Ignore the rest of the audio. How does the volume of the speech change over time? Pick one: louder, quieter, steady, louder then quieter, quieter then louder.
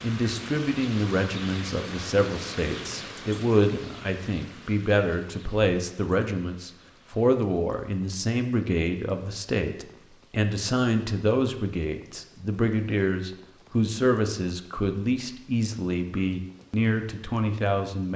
steady.